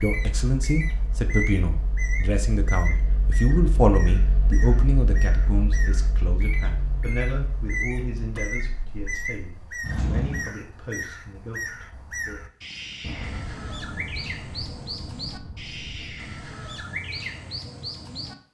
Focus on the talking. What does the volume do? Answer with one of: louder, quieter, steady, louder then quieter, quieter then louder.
quieter.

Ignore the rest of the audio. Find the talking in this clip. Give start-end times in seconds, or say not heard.
0.0-12.4.